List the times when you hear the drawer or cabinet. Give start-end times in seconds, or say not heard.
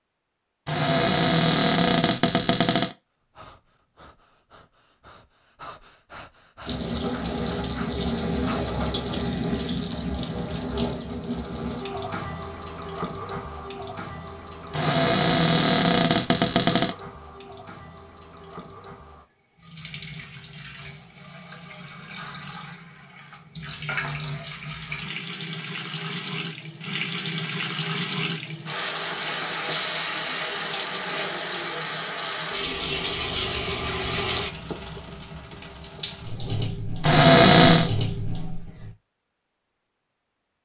0.7-3.0, 14.8-16.9, 37.0-37.9.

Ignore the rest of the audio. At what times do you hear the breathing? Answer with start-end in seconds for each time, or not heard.
3.3-8.7.